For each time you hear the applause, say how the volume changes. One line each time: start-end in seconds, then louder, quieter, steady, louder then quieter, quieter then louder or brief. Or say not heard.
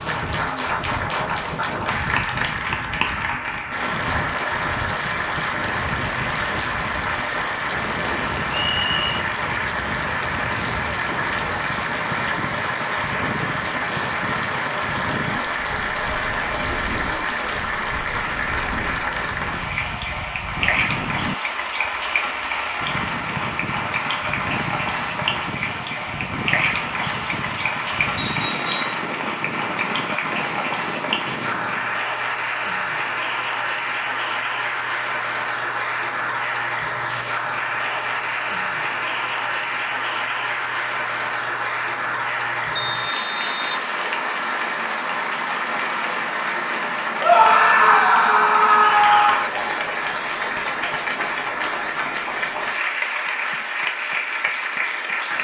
0.0-55.3 steady.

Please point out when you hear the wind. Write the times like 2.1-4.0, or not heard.
0.0-32.0.